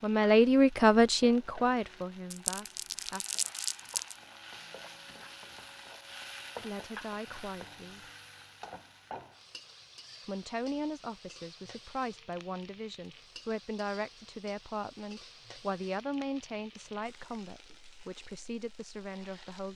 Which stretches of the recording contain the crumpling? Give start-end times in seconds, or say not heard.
2.3-4.2.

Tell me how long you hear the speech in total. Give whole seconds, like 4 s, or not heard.
14 s.